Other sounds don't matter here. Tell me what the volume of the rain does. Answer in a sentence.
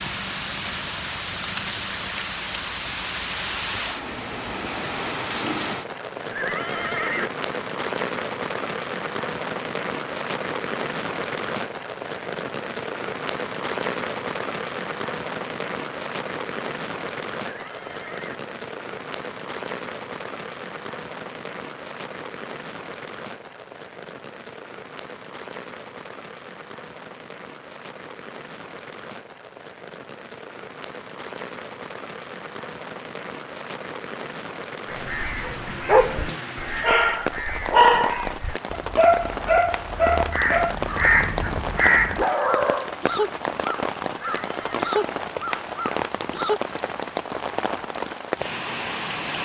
The volume of the rain goes down, then up.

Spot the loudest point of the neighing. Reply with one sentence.
The loudest moment of the neighing is at 7 seconds.